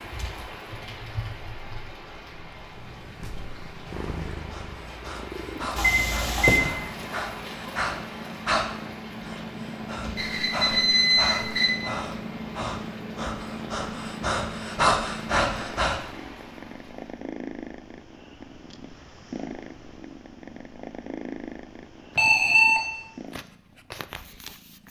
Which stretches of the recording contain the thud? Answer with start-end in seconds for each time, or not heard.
6.5-6.9.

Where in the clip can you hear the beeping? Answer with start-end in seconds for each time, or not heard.
5.8-6.6, 10.2-11.8, 22.1-22.8.